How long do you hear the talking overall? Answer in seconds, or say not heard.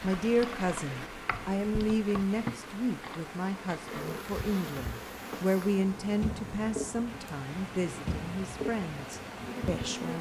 10 s.